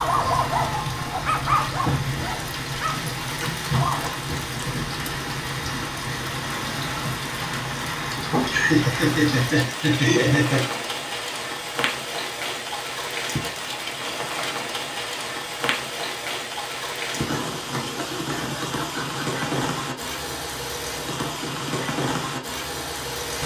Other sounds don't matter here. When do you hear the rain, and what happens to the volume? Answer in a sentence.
The rain can be heard from 0.0 to 23.4 s, at a steady volume.